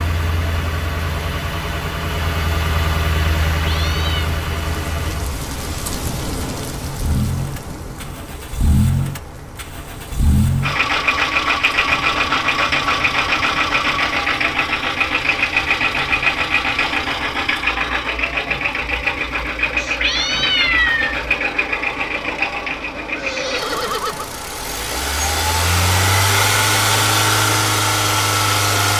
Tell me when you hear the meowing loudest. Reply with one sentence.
The volume of the meowing peaks at 21 seconds.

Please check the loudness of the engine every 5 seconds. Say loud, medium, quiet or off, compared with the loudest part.
medium, medium, loud, loud, medium, loud.